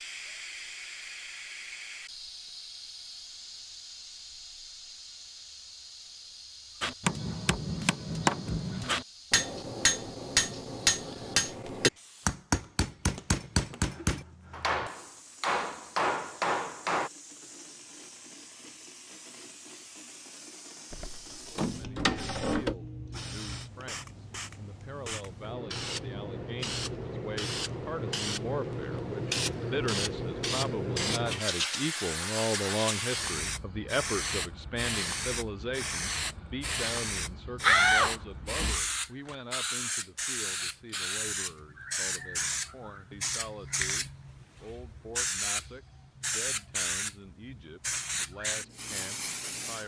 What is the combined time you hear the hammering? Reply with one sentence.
The hammering can be heard for 10 seconds in total.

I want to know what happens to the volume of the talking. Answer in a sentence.
The volume of the talking goes up, then down.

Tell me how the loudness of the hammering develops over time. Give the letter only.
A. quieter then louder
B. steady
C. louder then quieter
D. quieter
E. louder
B.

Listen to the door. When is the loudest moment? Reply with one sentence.
The loudest moment of the door is at 38 seconds.